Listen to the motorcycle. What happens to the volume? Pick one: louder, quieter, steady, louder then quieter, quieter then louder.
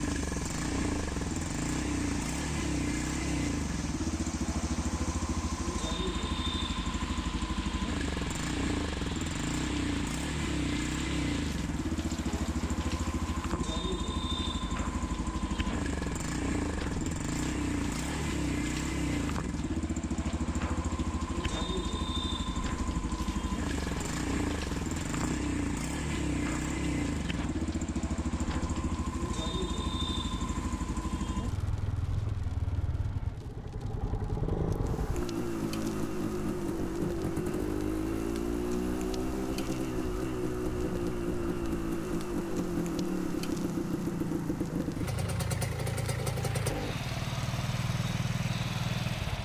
steady.